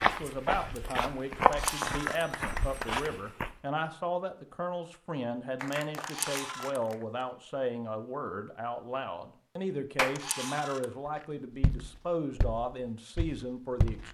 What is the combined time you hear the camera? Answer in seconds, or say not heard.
2 s.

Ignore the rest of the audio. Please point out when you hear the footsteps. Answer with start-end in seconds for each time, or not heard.
0.0-3.5, 11.6-14.0.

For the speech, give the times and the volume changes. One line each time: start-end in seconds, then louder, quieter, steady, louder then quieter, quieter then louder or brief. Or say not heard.
0.0-14.0 steady.